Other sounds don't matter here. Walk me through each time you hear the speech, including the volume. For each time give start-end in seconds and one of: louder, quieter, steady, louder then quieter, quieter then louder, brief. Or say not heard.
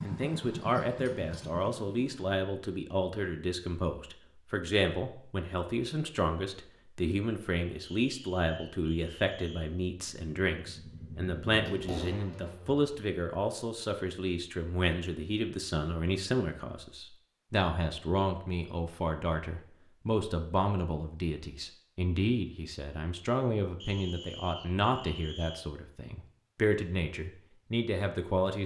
0.0-28.6 steady.